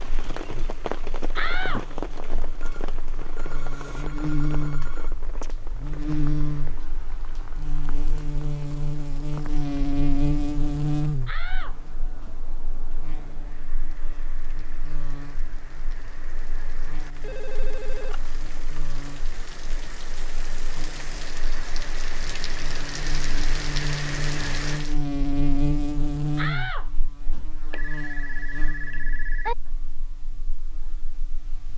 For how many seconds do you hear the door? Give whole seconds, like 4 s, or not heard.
4 s.